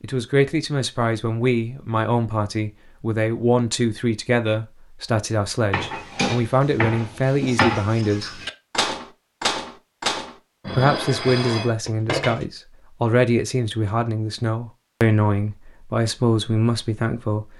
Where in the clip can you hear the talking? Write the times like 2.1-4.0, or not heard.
0.0-8.4, 10.7-17.4.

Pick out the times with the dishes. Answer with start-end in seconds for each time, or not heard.
5.7-12.4.